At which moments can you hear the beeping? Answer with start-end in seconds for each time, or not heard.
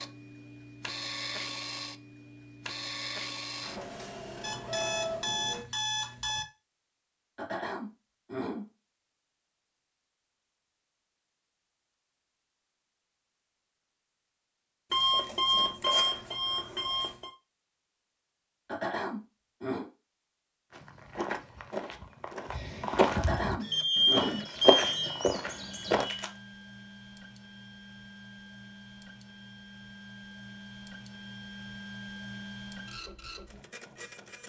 4.4-6.5, 14.9-17.3, 23.6-26.3.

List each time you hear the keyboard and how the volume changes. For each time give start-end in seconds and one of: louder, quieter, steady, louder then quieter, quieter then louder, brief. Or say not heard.
not heard.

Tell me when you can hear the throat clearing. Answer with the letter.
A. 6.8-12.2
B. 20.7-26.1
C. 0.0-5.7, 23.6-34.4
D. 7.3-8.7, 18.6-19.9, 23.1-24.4
D.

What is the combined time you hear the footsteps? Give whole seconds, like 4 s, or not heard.
5 s.